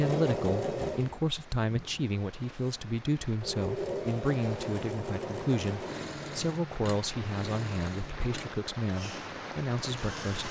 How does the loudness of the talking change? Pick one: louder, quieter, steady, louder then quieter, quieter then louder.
steady.